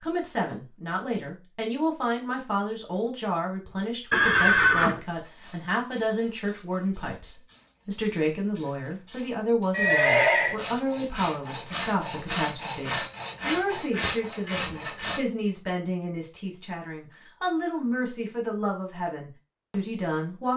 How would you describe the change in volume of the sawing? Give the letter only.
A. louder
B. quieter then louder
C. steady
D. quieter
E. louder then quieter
A.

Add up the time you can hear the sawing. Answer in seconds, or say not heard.
10 s.